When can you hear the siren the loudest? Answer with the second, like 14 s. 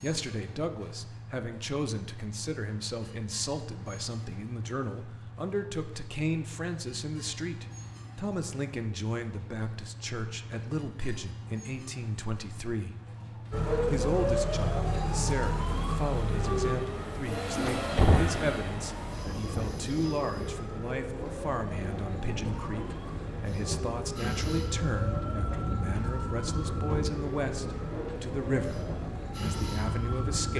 14 s.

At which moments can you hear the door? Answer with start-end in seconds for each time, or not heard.
17.6-18.4.